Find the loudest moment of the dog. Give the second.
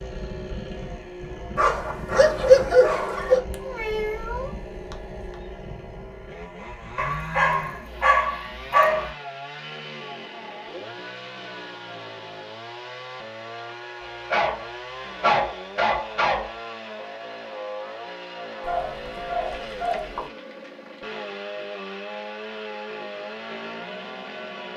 3 s.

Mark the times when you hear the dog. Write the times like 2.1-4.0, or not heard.
1.6-3.4, 7.0-9.1, 14.0-16.6, 18.6-20.3.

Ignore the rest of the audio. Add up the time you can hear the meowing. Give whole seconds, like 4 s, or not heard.
2 s.